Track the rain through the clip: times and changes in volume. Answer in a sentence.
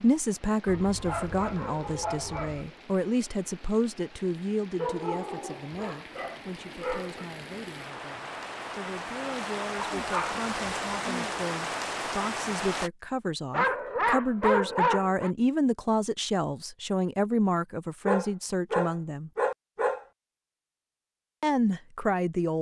You can hear the rain from 0.0 to 12.9 s, getting louder.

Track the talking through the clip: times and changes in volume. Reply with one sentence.
You can hear the talking from 0.0 to 19.3 s, getting quieter then louder; and briefly from 21.4 to 22.5 s.